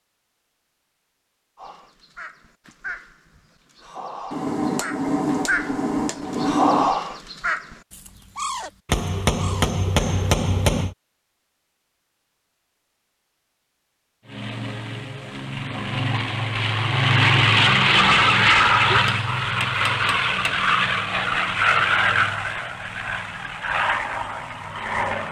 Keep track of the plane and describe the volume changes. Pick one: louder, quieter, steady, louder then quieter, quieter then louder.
louder then quieter.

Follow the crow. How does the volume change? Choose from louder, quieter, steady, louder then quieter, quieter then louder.
louder then quieter.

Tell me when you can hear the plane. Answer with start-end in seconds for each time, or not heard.
14.3-25.2.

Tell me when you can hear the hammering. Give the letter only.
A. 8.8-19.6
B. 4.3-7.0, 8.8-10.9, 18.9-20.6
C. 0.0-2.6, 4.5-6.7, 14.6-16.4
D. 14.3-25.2
B.